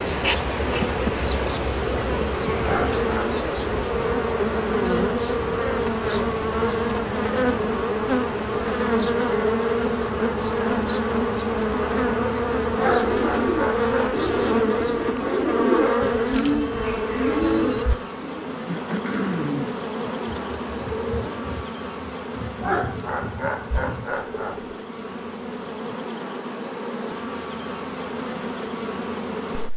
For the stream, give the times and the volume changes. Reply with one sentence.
The stream can't be heard in this clip.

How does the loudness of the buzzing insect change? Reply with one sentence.
The loudness of the buzzing insect goes down.